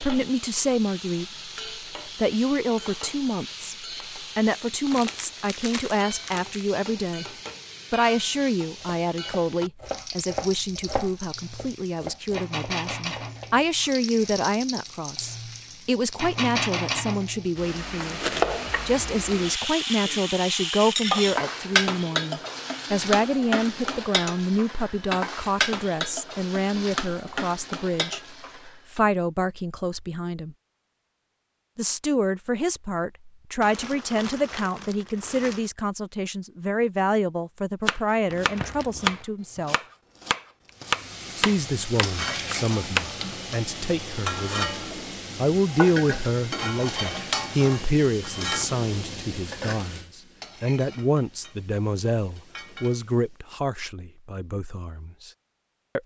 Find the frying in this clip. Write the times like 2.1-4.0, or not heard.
0.0-29.0, 40.8-53.5.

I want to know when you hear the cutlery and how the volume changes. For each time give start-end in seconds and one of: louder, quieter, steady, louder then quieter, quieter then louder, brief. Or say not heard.
not heard.